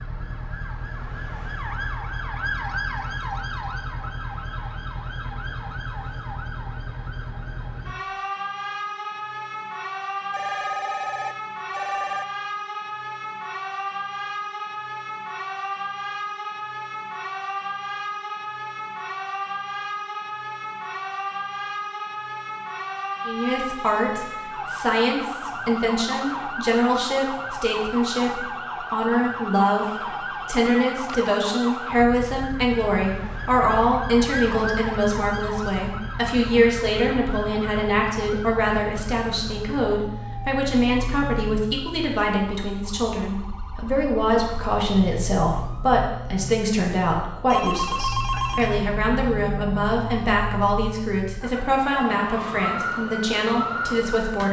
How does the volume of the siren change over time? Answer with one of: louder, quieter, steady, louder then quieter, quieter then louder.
steady.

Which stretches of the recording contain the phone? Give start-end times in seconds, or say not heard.
10.3-12.2, 30.1-31.4, 47.5-48.8.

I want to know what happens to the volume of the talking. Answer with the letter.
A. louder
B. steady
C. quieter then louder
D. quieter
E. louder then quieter
B.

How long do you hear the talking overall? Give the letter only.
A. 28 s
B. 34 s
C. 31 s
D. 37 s
C.